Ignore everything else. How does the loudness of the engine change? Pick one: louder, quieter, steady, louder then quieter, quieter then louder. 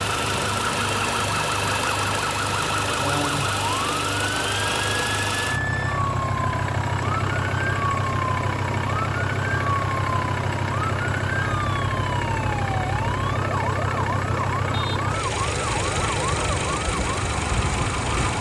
steady.